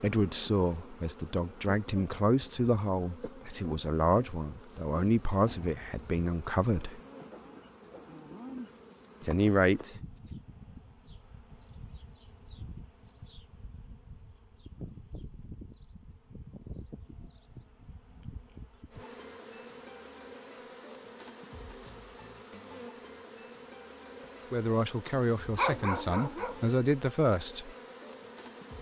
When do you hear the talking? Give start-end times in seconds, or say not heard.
0.0-7.0, 9.2-9.9, 24.5-27.7.